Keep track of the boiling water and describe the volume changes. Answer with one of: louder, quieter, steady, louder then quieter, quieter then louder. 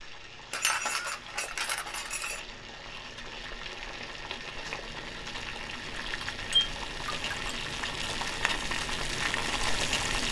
louder.